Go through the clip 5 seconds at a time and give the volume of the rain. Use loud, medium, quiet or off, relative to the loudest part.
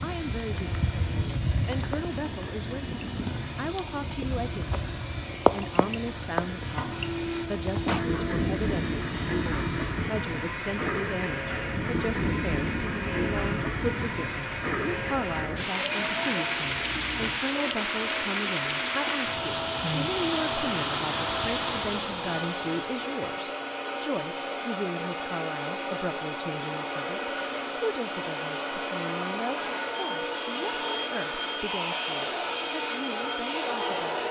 medium, loud, loud, loud, loud, off, off.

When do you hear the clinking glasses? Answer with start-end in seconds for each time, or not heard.
not heard.